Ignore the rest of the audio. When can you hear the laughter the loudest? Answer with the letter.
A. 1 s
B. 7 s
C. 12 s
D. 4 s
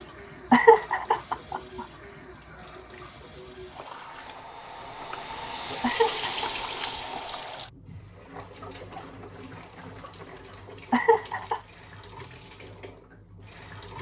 A.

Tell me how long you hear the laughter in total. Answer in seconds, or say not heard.
3 s.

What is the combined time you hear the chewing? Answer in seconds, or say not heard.
not heard.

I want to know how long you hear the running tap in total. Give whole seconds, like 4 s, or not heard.
14 s.